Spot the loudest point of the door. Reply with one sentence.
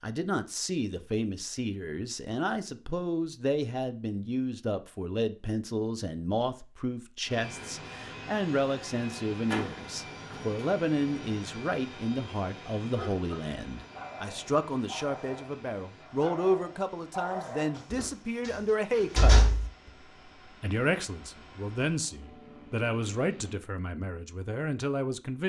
The loudest moment of the door is at 19 seconds.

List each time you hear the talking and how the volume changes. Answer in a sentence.
You can hear the talking from 0.0 to 25.4 s, at a steady volume.